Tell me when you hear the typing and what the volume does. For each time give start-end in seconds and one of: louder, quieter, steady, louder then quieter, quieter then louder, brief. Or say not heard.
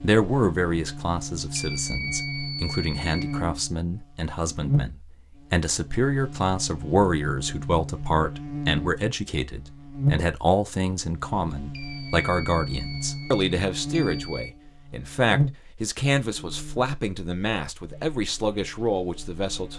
not heard.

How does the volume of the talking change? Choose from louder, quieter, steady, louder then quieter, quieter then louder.
steady.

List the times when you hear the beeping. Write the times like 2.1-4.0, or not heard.
1.6-3.5, 11.7-14.5.